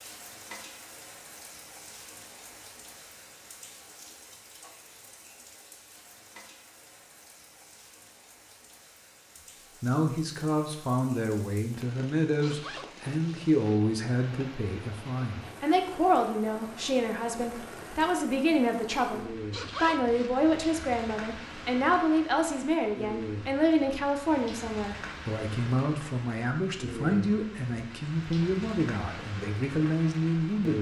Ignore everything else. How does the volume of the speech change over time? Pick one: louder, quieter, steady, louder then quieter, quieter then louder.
steady.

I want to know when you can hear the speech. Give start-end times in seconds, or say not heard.
9.8-30.7.